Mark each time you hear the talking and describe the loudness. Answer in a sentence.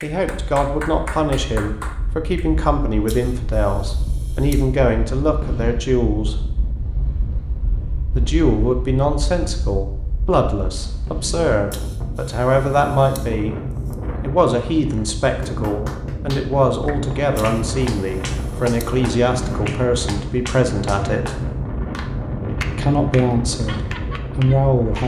You can hear the talking from 0.0 to 6.3 s, at a steady volume; from 8.2 to 13.6 s, getting quieter then louder; from 14.2 to 21.4 s, at a steady volume; and briefly from 22.8 to 25.0 s.